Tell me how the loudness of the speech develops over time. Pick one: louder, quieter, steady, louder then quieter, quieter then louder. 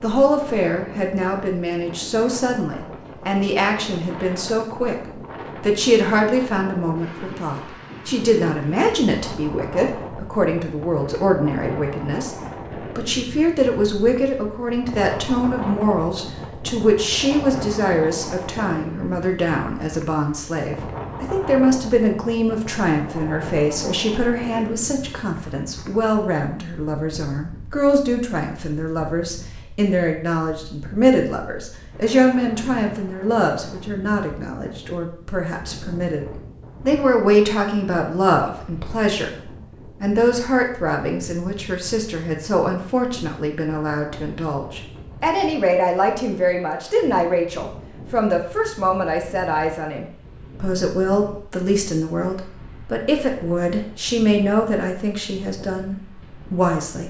steady.